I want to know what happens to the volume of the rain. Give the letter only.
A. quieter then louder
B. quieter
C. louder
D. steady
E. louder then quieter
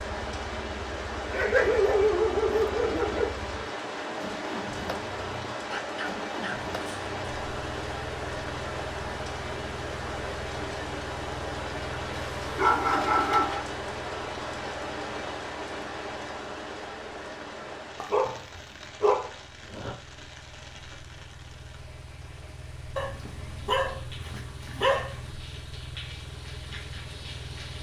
B.